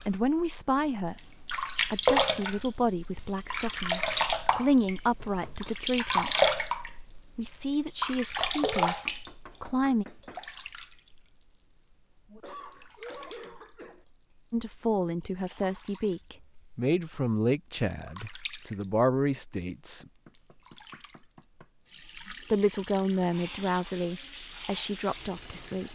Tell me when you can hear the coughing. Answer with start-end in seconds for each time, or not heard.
12.2-14.1.